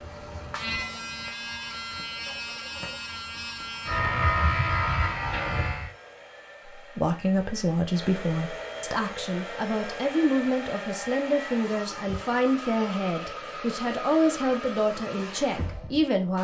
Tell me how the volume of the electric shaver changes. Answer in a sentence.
The loudness of the electric shaver goes up.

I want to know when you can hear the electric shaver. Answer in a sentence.
The electric shaver can be heard from 0.0 to 5.9 s.